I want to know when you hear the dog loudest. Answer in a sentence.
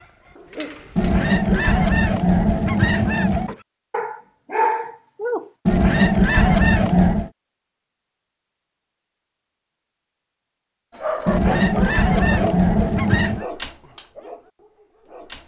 The volume of the dog peaks at 5 seconds.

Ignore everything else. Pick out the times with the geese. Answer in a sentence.
You can hear the geese from 0.9 to 3.5 s, from 5.7 to 7.3 s and from 11.2 to 13.4 s.